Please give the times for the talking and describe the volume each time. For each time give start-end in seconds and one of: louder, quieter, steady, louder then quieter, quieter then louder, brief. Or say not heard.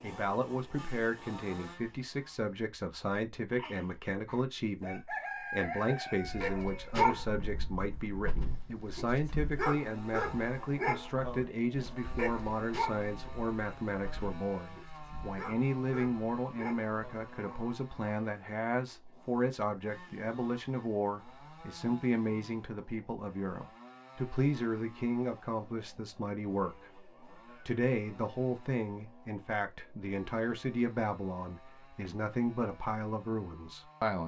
0.0-34.2 steady.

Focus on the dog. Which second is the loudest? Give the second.
7 s.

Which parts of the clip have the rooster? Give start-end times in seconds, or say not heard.
3.5-7.0.